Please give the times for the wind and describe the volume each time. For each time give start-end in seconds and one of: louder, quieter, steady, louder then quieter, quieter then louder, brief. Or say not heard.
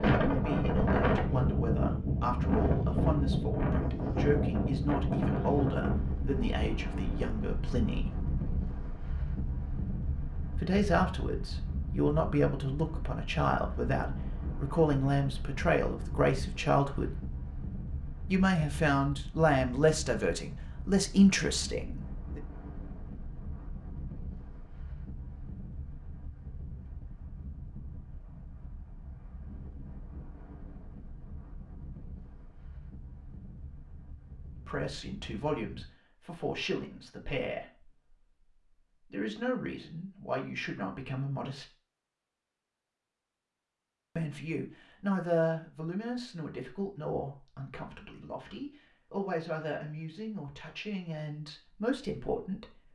0.0-35.9 quieter.